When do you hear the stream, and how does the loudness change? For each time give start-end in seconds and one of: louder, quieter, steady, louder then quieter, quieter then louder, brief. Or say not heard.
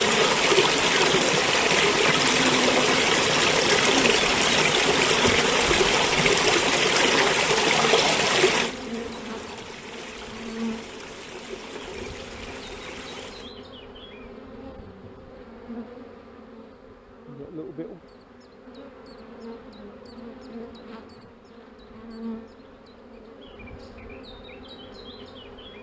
0.0-13.6 quieter.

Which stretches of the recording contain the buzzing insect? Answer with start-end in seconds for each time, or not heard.
0.0-25.7.